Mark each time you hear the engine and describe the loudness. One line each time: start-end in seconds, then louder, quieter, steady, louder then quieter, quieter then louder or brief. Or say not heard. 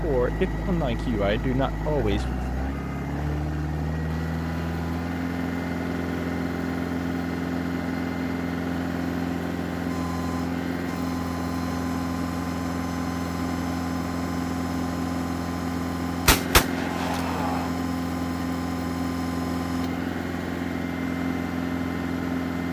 0.0-22.6 steady.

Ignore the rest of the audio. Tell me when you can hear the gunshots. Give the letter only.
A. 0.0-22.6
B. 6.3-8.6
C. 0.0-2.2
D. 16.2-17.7
D.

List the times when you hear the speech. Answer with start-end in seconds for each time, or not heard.
0.0-2.2.